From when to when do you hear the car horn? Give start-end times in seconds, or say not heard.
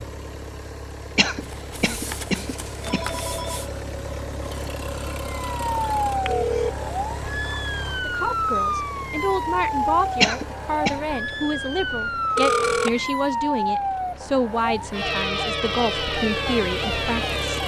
not heard.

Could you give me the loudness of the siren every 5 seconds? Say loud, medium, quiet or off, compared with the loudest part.
off, loud, loud, loud.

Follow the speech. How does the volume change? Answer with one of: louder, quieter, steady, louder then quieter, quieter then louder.
steady.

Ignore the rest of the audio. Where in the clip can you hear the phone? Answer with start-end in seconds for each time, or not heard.
1.4-3.7, 6.2-6.7, 12.3-13.0.